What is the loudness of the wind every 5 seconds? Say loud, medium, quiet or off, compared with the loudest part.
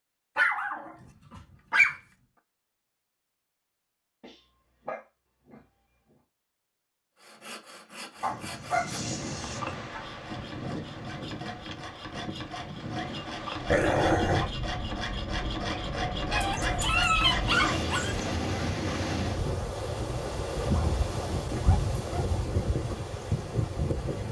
off, medium, medium, loud, loud.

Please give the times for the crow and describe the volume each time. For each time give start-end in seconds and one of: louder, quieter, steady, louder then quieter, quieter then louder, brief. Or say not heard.
not heard.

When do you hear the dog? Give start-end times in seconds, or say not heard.
0.3-1.9, 4.2-5.7, 8.2-10.0, 13.7-14.5, 16.3-18.4, 20.6-22.4.